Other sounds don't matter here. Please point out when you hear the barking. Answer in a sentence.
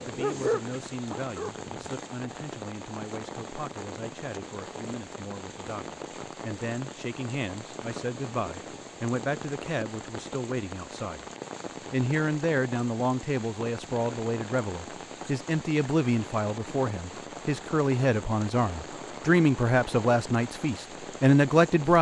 You can hear the barking from 0.0 to 1.9 s.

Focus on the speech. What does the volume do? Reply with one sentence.
The loudness of the speech goes up.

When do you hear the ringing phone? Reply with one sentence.
You can't hear the ringing phone here.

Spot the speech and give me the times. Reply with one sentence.
You can hear the speech from 0.0 to 11.2 s and from 11.9 to 21.9 s.